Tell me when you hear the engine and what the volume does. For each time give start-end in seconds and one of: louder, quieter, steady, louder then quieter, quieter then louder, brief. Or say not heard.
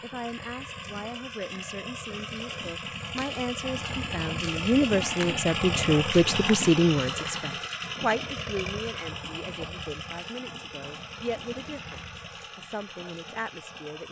0.0-14.0 louder then quieter.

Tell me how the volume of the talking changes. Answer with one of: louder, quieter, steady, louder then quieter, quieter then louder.
louder then quieter.